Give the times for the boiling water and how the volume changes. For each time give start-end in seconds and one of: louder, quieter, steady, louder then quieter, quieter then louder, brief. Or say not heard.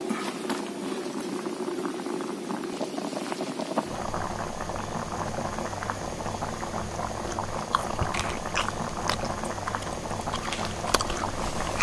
0.0-11.7 steady.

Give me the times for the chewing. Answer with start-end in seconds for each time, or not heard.
7.7-11.7.